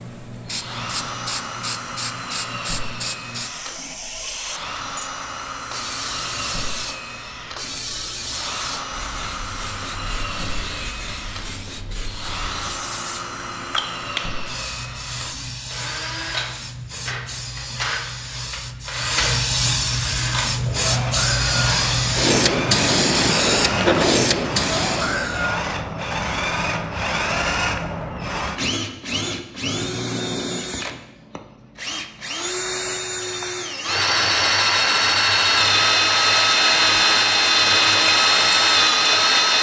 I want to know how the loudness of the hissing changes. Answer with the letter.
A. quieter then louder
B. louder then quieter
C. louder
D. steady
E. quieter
C.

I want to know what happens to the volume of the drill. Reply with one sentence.
The loudness of the drill goes up.